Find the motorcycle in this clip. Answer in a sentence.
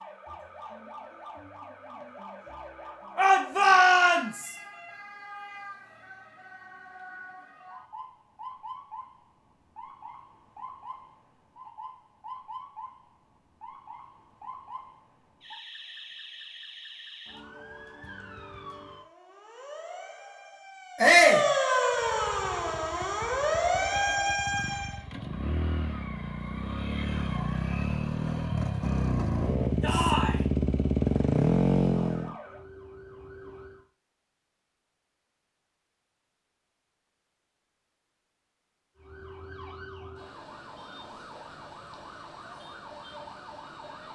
The motorcycle can be heard from 21.9 to 32.4 s.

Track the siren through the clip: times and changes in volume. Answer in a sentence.
The siren can be heard from 0.0 to 25.0 s, getting louder; briefly from 31.9 to 33.9 s; and from 39.0 to 44.1 s, at a steady volume.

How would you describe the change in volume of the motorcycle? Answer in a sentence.
The loudness of the motorcycle goes up.